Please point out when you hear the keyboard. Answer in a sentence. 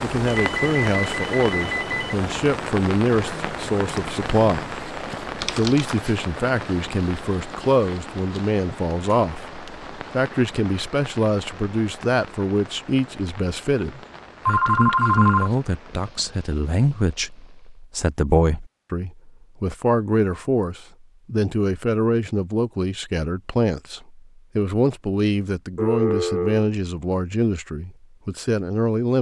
You can hear the keyboard from 5.3 to 6.0 s.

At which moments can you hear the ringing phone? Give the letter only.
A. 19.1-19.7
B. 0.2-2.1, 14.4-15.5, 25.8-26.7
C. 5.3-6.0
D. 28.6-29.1
B.